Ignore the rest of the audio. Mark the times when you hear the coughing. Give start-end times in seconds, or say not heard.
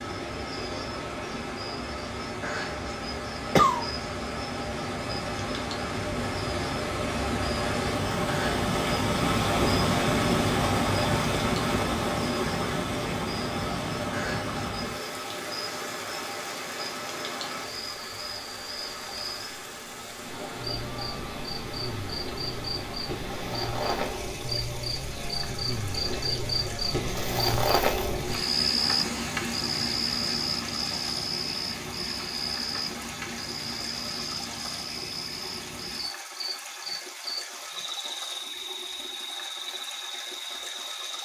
3.1-3.9.